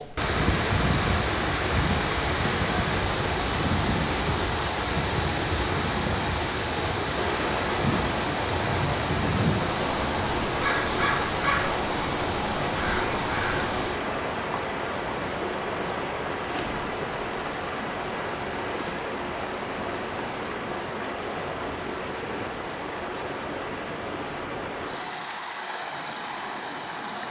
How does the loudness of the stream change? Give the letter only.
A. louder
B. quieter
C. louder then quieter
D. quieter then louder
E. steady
B.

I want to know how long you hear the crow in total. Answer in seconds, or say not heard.
6 s.